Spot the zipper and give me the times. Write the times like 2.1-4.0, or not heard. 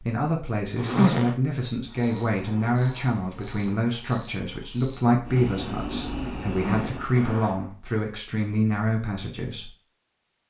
0.8-1.4, 6.5-7.7.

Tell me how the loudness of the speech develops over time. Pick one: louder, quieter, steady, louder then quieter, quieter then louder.
steady.